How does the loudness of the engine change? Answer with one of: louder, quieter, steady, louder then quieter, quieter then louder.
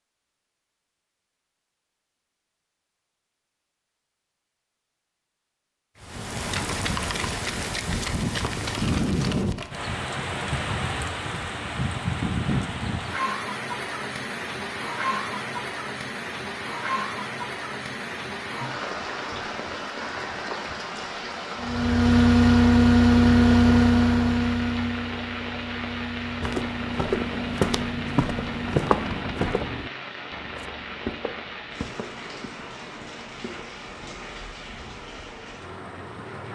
quieter.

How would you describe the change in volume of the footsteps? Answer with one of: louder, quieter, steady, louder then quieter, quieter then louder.
quieter.